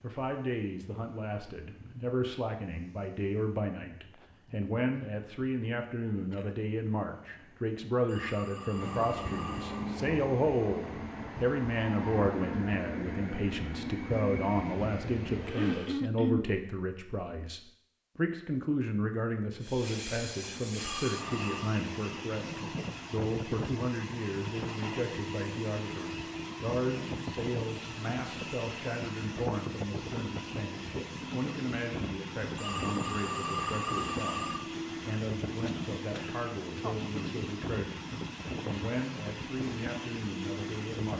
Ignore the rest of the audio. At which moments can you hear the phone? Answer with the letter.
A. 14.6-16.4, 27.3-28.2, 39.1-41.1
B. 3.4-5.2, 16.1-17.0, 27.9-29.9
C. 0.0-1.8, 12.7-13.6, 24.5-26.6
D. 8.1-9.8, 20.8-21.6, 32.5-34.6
D.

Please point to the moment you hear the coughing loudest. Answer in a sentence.
The loudest moment of the coughing is at 16 seconds.